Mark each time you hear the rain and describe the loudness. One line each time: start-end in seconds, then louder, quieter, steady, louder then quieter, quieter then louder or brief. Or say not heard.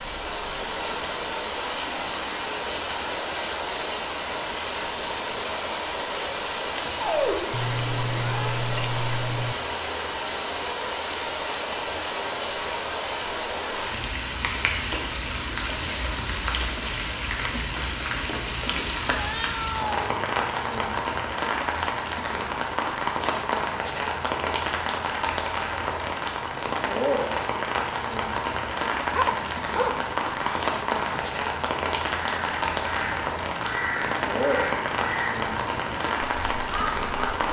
0.0-37.4 steady.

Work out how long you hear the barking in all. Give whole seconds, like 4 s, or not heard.
3 s.